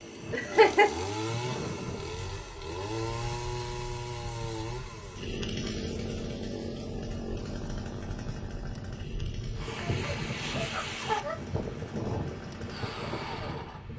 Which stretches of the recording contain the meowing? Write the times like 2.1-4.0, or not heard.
not heard.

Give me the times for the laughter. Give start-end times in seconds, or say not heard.
0.3-0.9, 9.8-11.3.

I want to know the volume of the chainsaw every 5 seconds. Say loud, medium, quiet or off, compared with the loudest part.
loud, loud, medium.